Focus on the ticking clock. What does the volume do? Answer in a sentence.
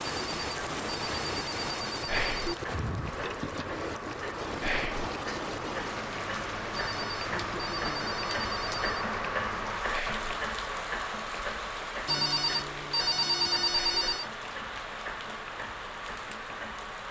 The volume of the ticking clock goes up, then down.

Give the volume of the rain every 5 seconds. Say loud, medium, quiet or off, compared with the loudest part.
loud, loud, medium, medium.